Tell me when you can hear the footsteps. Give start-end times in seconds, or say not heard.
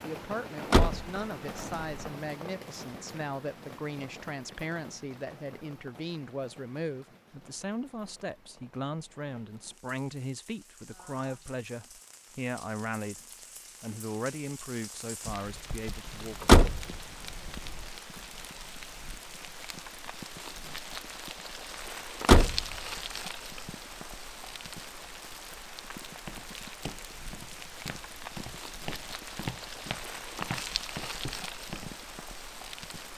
26.1-32.0.